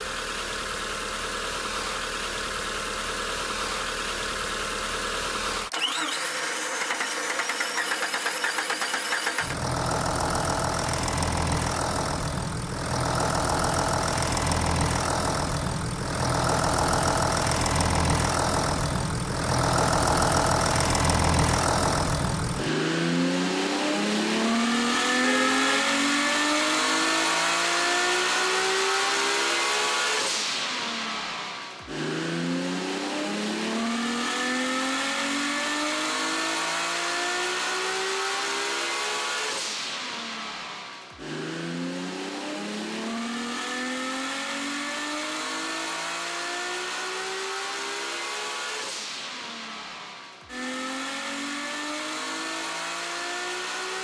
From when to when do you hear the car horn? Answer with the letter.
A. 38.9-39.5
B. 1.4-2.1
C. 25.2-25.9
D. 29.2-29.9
C.